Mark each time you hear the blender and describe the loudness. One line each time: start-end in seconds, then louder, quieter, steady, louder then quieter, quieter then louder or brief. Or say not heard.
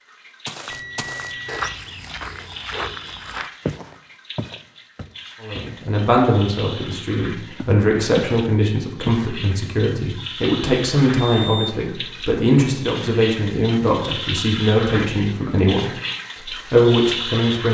not heard.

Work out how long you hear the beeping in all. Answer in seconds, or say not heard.
2 s.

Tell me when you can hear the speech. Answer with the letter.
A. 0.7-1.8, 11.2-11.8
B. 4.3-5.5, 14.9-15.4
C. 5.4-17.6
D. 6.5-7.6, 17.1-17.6
C.